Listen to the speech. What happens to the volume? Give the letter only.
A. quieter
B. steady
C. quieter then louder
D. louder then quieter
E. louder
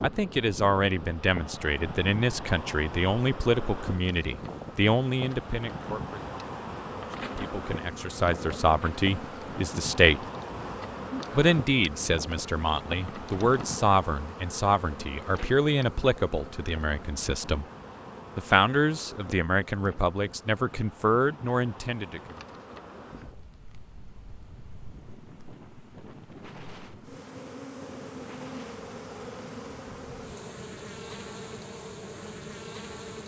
B.